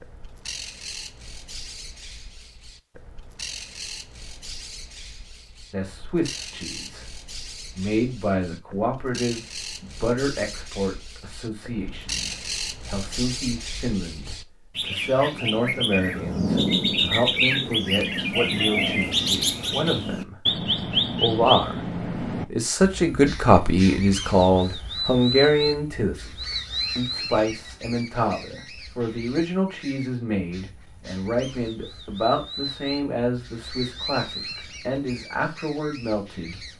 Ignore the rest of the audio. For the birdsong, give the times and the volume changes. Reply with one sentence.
You can hear the birdsong from 0.0 to 36.7 s, getting louder then quieter.